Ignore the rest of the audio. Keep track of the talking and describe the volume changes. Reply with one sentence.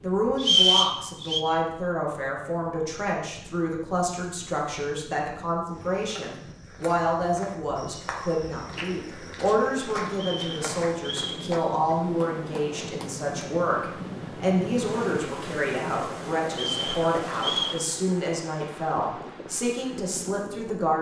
The loudness of the talking stays about the same.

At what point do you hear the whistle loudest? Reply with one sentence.
The loudest moment of the whistle is at 1 second.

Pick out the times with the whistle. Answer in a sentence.
The whistle can be heard from 0.4 to 1.4 s, from 10.1 to 11.4 s and from 16.5 to 17.8 s.